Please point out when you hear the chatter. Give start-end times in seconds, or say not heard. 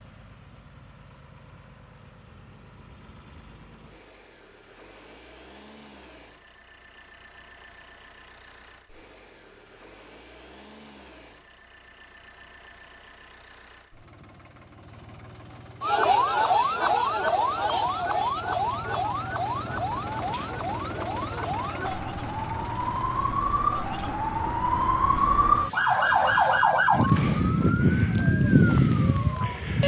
not heard.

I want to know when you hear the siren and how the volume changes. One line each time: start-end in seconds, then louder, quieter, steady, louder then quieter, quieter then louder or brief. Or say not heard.
15.8-29.8 quieter then louder.